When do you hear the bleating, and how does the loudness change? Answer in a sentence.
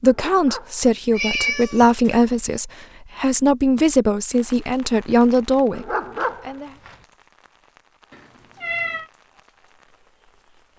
You can't hear the bleating here.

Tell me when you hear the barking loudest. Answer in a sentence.
The loudest moment of the barking is at 6 seconds.